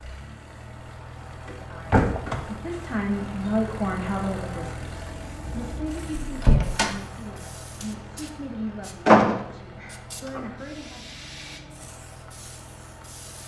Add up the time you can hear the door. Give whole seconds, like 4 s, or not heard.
4 s.